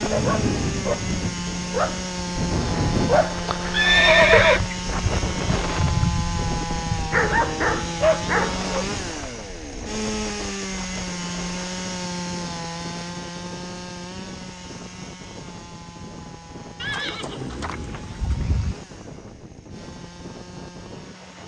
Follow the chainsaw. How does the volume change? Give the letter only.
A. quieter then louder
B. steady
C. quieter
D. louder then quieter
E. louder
C.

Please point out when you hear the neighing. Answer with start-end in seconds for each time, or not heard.
3.7-4.6, 16.8-18.8.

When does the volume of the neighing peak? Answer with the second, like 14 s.
4 s.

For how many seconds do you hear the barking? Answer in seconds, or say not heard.
9 s.